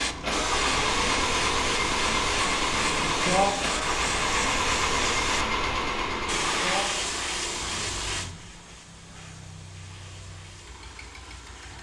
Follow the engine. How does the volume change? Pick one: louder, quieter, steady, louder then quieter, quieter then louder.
quieter.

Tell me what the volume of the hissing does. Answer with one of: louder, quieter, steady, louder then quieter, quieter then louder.
quieter.